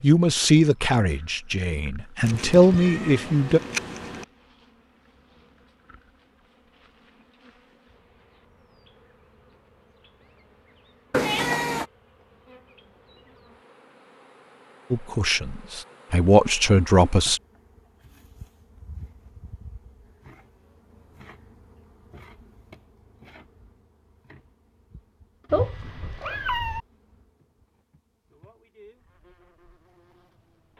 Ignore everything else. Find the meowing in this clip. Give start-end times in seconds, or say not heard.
2.2-4.2, 11.1-11.8, 25.5-26.8.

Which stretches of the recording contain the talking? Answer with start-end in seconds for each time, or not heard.
0.0-3.6, 14.9-17.4.